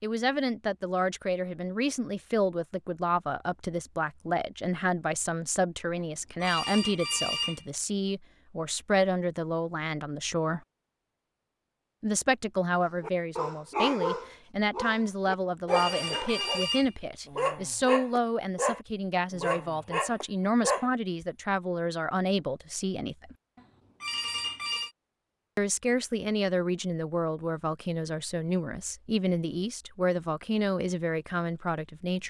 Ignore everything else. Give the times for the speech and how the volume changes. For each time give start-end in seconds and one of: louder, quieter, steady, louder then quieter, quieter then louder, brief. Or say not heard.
0.0-10.6 steady
12.0-23.4 steady
25.6-32.2 steady.